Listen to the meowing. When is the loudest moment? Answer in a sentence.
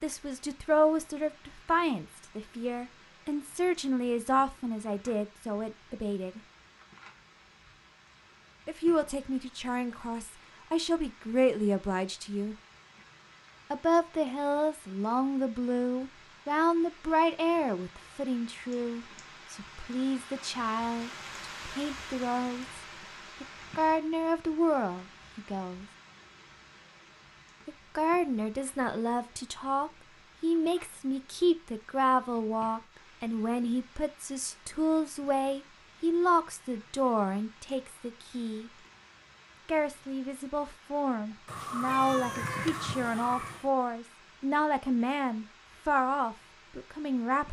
The loudest moment of the meowing is at 43 seconds.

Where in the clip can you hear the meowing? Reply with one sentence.
The meowing can be heard from 41.5 to 43.7 s.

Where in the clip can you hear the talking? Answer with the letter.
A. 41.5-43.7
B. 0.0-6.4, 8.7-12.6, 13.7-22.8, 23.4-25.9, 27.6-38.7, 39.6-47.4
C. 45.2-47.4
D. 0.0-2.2
B.